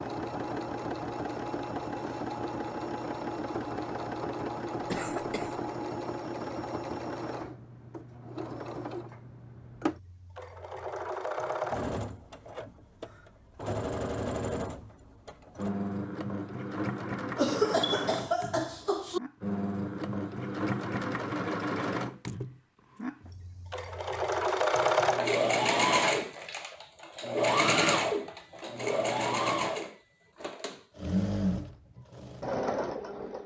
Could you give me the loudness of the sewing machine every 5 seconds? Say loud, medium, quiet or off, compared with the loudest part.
medium, medium, medium, medium, loud, loud, medium.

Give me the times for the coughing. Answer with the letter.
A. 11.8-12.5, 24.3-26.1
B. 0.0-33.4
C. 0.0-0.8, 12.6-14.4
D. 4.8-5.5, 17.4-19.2
D.